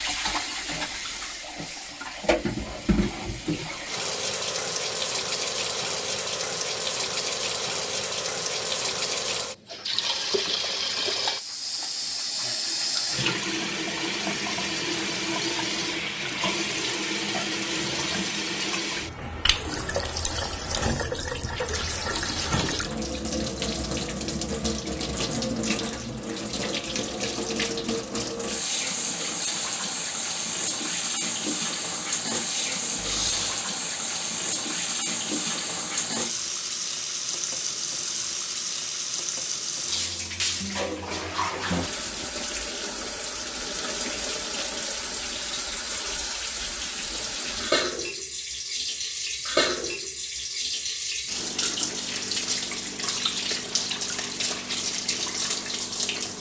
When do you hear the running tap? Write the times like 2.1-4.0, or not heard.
0.0-56.3.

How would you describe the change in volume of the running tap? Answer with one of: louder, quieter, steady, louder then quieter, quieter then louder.
steady.